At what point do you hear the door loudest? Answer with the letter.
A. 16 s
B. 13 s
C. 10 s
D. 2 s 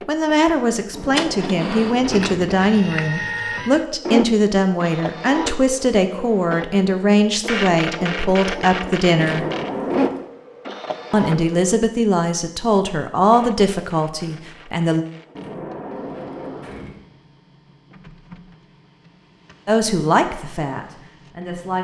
C.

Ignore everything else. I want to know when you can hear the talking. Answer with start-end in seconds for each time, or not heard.
0.1-9.4, 11.1-15.1, 19.6-21.7.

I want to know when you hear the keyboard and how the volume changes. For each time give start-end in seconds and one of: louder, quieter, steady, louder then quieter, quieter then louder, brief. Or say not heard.
not heard.